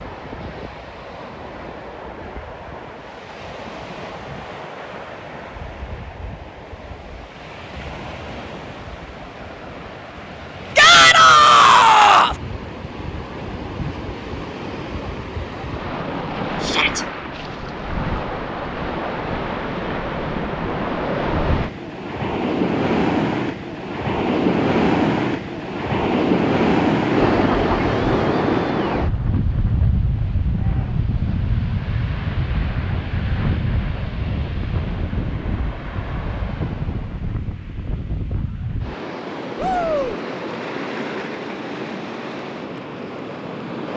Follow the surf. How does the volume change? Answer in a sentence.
The volume of the surf goes up, then down.